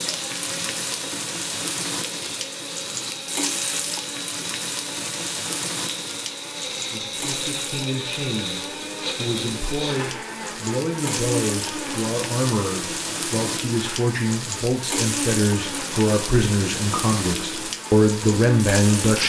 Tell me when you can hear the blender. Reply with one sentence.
You can hear the blender from 0.0 to 19.2 s.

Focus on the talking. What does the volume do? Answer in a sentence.
The loudness of the talking goes up.